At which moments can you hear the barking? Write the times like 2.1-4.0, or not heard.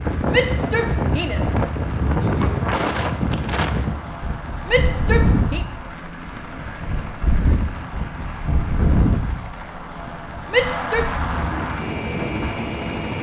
not heard.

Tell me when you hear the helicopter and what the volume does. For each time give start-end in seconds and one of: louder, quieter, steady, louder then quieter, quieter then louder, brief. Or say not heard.
0.0-13.1 louder.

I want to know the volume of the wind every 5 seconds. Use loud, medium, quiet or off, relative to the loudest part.
loud, loud, medium.